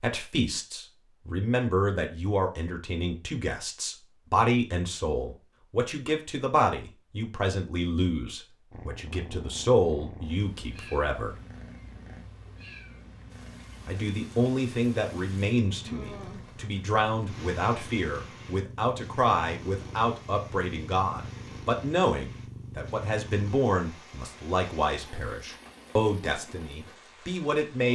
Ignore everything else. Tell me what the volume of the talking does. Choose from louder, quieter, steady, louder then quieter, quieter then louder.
steady.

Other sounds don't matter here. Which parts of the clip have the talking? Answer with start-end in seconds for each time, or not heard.
0.0-11.3, 13.8-27.9.